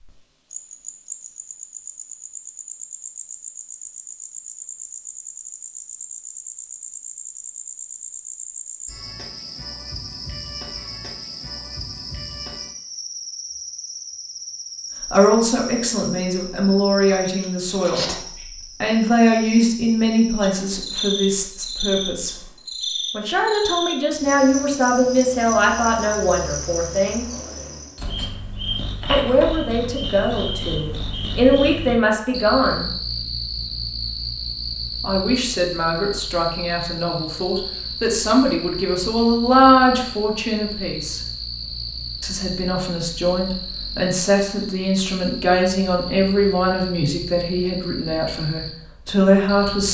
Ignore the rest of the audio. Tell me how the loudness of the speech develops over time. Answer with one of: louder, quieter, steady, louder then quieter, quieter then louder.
steady.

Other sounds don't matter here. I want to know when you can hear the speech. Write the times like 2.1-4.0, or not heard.
15.1-18.1, 18.8-22.4, 23.1-27.2, 29.1-32.9, 35.0-41.2, 42.2-49.8.